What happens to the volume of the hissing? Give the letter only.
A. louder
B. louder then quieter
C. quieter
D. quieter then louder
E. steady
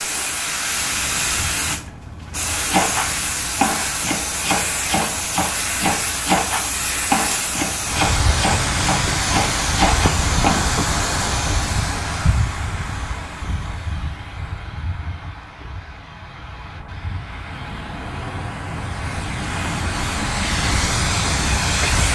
D.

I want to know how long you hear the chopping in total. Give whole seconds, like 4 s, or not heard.
8 s.